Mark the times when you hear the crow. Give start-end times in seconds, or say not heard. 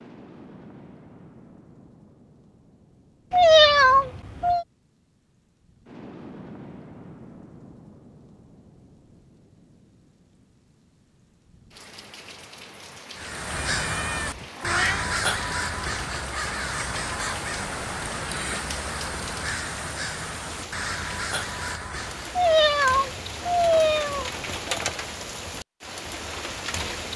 13.2-22.4.